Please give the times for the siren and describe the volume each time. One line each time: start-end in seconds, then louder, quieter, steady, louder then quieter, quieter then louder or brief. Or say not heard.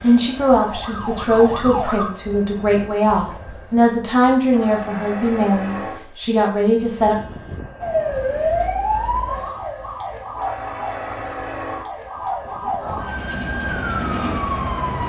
0.2-2.0 brief
7.8-15.0 quieter then louder.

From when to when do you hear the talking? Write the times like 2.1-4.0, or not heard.
0.0-7.2.